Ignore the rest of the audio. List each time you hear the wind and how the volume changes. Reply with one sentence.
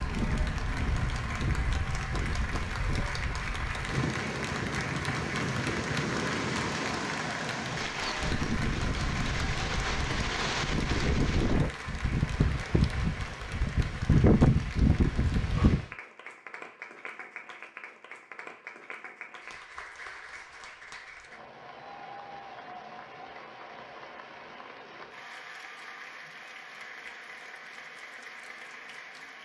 The wind can be heard from 0.0 to 15.8 s, getting louder.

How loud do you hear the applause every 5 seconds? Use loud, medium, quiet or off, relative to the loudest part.
loud, loud, medium, medium, medium, medium.